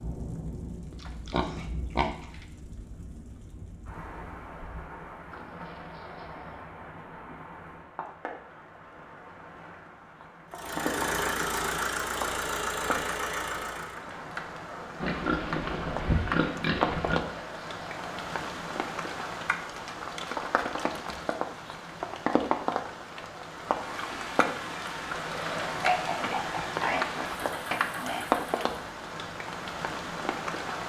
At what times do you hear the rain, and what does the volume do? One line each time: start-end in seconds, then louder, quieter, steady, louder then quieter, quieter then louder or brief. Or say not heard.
0.0-30.8 louder.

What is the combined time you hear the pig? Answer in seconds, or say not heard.
6 s.